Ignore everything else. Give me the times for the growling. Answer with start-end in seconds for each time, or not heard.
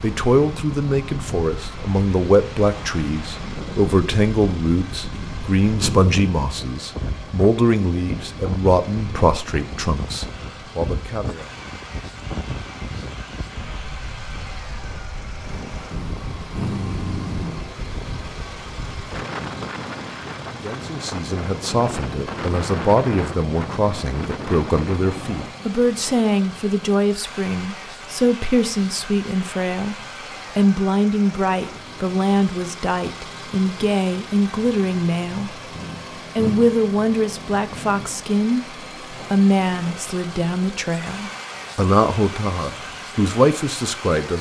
5.1-6.2, 15.9-17.6, 35.7-36.7.